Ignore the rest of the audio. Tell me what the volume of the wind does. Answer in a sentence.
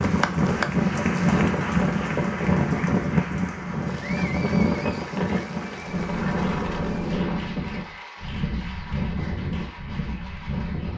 The loudness of the wind goes down.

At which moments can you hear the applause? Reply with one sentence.
You can hear the applause from 0.0 to 10.9 s.